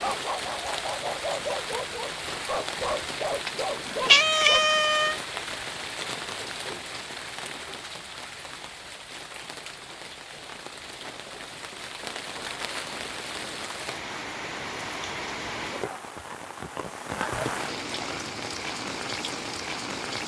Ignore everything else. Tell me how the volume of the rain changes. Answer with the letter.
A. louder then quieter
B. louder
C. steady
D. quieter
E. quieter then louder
E.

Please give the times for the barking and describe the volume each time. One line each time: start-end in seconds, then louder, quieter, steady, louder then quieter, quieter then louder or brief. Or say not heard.
0.0-4.6 steady.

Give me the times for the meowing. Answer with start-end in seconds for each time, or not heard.
3.5-5.2.